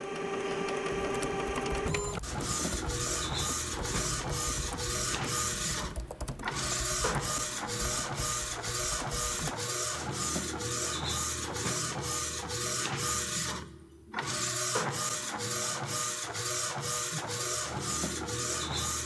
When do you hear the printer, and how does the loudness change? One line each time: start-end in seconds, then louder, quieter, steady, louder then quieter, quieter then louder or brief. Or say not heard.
0.0-19.0 steady.